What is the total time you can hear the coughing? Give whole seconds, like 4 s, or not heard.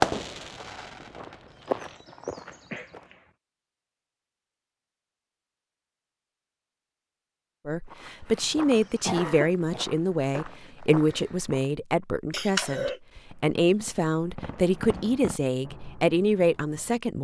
3 s.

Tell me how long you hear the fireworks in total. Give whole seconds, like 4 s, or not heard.
6 s.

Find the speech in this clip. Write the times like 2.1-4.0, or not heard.
7.7-17.1.